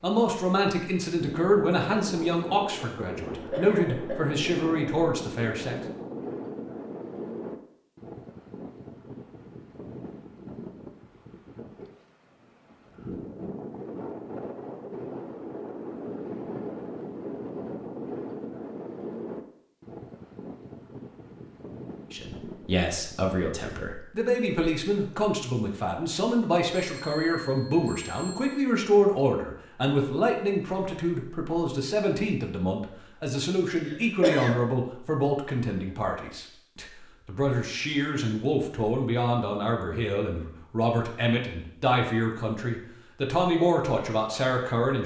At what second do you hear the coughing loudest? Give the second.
34 s.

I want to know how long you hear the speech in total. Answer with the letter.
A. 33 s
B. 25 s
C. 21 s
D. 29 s
D.